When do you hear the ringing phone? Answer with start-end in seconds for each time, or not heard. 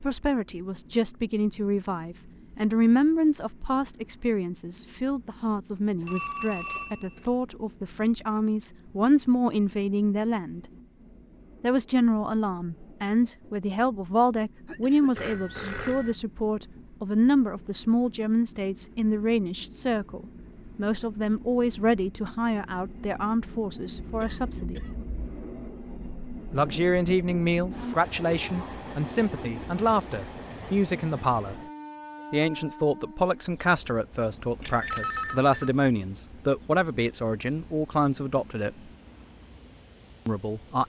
6.0-7.3, 15.2-16.1, 34.6-35.7.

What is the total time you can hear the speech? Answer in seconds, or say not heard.
36 s.